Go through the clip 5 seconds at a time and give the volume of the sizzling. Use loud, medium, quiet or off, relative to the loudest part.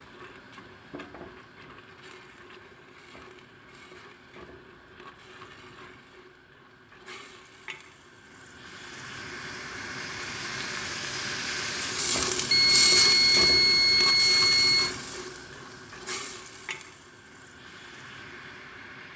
quiet, quiet, loud, quiet.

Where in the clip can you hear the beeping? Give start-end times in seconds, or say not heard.
12.5-14.9.